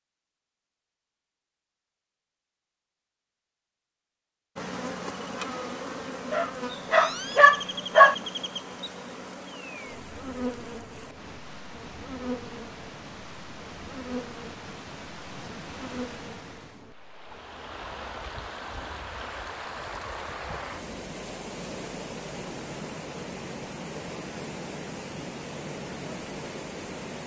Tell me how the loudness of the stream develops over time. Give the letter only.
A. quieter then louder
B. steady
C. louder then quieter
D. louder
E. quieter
D.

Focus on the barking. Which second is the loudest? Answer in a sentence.
The volume of the barking peaks at 8 seconds.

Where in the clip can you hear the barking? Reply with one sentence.
The barking can be heard from 6.3 to 8.2 s.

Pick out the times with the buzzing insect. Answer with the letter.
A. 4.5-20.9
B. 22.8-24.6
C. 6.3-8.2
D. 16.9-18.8
A.